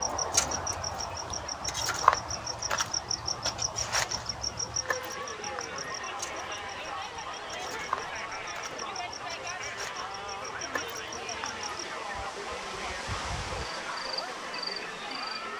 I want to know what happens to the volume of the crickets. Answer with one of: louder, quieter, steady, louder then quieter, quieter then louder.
quieter.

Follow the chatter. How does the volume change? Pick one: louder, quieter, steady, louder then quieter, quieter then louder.
louder.